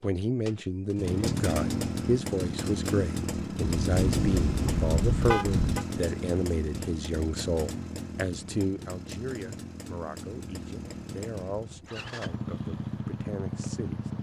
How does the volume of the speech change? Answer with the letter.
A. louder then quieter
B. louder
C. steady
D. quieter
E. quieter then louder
D.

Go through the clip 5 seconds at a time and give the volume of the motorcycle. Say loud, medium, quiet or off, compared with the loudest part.
loud, medium, medium.